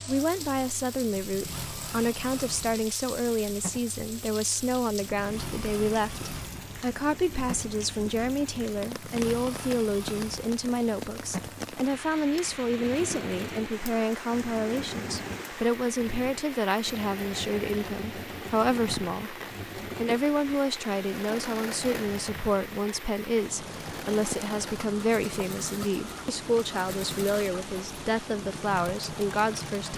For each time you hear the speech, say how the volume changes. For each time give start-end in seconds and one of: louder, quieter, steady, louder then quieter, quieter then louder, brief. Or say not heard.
0.1-29.9 steady.